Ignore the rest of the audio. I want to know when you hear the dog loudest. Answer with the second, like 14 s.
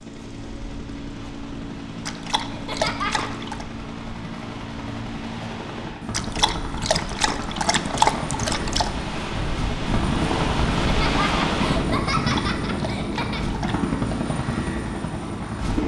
8 s.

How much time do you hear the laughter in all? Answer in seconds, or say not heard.
4 s.